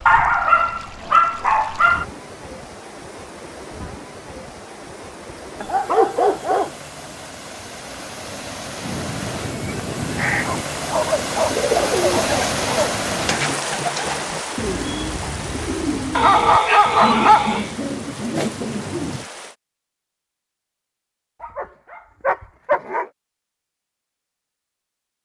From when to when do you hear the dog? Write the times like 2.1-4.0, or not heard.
0.1-2.0, 5.6-6.7, 10.3-12.9, 16.1-17.7, 21.4-23.1.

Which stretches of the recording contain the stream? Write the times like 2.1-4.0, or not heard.
0.0-19.6.